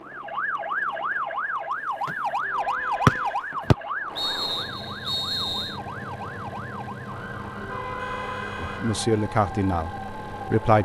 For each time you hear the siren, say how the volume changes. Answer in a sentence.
The siren can be heard from 0.0 to 10.7 s, getting quieter.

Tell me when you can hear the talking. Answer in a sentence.
You can hear the talking from 8.6 to 10.8 s.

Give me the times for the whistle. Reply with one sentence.
The whistle can be heard from 3.0 to 5.8 s.